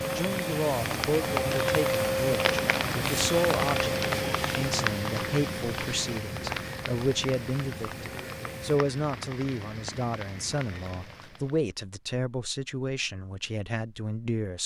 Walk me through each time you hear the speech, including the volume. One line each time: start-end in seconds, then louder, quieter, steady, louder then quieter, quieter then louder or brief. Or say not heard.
0.1-14.6 steady.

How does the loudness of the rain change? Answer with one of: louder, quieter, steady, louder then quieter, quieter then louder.
quieter.